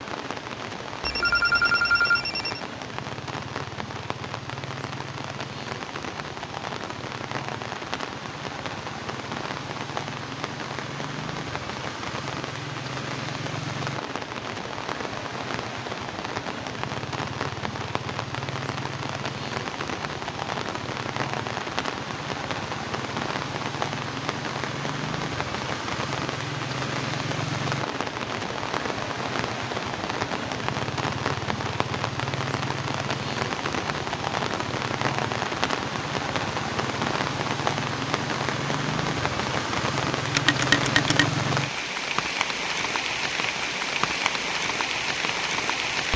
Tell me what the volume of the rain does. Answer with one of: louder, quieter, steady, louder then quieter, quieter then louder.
louder.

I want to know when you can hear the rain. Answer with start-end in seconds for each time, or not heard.
0.0-46.1.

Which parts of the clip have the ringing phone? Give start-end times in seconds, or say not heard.
1.0-2.6, 40.3-41.2.